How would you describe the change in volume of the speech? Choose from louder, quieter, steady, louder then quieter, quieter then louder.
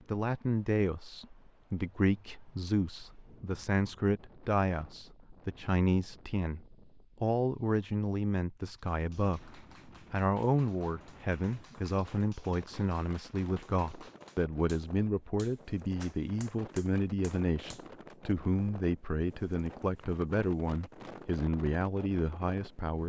steady.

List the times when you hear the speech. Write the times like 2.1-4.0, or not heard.
0.1-23.0.